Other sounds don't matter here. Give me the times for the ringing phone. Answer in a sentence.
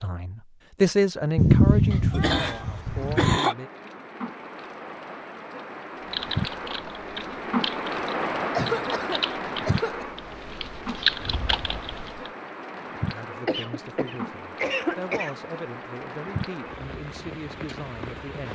The ringing phone can't be heard in this clip.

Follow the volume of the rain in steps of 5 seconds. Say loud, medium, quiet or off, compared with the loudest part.
medium, loud, medium, medium.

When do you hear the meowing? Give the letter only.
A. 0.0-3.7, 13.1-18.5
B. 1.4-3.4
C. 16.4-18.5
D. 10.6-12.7
B.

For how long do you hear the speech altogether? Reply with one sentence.
You can hear the speech for 9 seconds altogether.